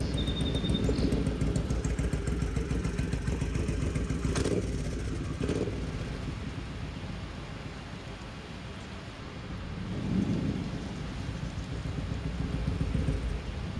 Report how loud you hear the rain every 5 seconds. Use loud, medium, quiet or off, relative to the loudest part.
loud, medium, loud.